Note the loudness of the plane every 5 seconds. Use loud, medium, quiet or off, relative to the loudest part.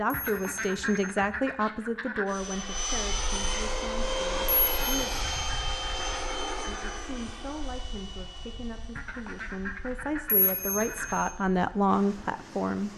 loud, medium, quiet.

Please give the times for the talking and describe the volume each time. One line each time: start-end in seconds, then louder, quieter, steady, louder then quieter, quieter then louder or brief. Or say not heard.
0.0-5.2 quieter
6.7-12.9 louder.